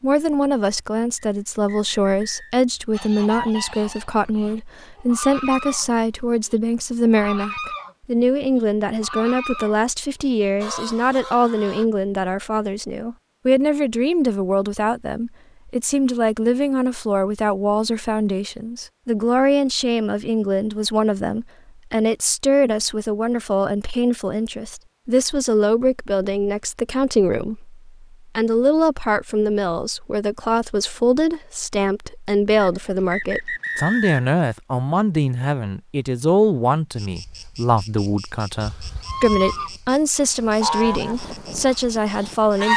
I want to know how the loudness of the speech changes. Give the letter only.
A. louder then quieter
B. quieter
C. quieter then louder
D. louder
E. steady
E.